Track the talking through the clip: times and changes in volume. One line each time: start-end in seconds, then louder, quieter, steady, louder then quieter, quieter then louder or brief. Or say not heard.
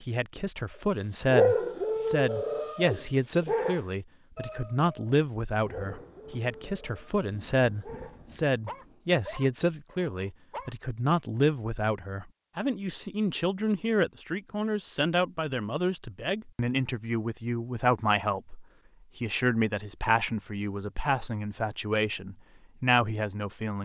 0.0-23.8 steady.